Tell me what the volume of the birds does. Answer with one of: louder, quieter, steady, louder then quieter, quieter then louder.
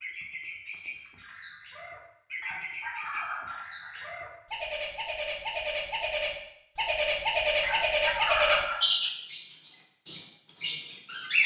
louder.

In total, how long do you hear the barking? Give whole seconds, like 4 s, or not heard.
3 s.